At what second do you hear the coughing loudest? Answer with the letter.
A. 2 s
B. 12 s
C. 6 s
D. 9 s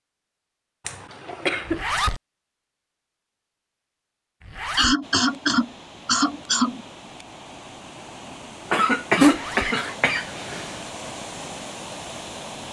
D.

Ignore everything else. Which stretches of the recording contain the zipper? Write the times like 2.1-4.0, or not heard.
1.6-2.2, 4.4-5.0, 9.2-9.8.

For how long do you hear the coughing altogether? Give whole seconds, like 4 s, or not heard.
5 s.